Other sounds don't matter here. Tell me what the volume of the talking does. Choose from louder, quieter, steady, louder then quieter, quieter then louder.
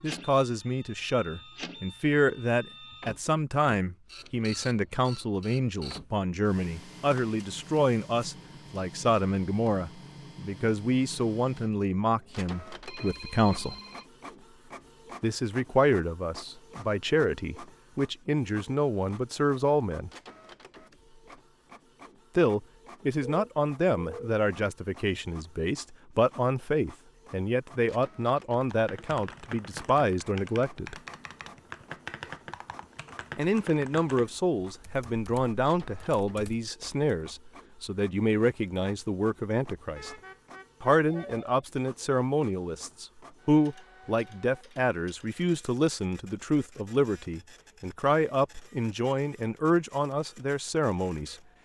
steady.